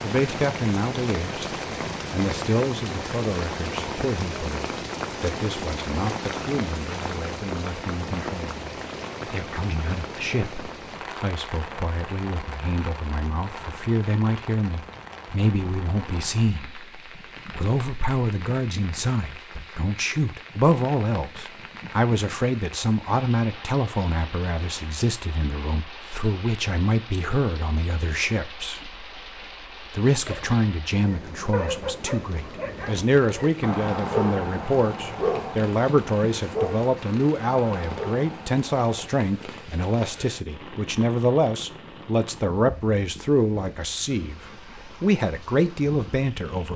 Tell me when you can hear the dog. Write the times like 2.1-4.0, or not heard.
30.2-39.1.